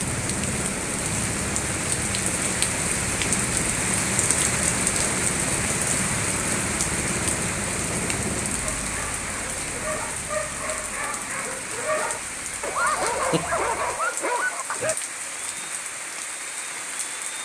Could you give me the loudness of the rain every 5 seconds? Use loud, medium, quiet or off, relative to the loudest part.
loud, loud, medium, medium.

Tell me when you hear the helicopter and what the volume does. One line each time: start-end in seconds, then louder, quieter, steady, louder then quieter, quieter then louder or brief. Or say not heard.
0.0-17.3 quieter.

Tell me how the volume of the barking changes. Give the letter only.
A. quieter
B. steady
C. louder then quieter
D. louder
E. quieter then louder
D.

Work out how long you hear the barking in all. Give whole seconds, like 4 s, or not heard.
6 s.